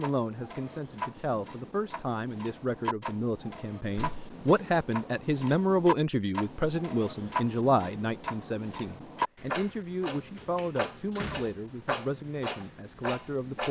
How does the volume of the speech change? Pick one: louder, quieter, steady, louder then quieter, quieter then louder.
louder then quieter.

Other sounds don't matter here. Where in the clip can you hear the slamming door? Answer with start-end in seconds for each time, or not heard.
3.9-4.3, 10.3-11.6.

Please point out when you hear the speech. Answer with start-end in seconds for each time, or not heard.
0.0-13.6.